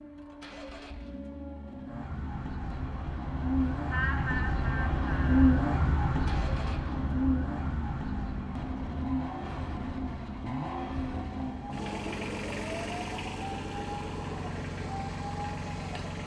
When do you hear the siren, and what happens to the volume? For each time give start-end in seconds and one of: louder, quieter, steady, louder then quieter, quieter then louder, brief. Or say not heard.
0.0-16.2 louder then quieter.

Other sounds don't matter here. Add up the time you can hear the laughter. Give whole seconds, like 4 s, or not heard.
2 s.